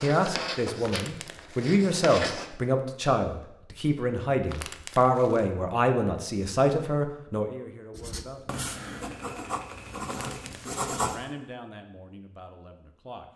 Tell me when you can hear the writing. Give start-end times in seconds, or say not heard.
0.0-2.5, 7.9-11.2.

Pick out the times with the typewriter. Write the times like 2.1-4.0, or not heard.
9.0-10.6.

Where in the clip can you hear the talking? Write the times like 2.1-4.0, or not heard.
0.0-8.6, 10.4-13.3.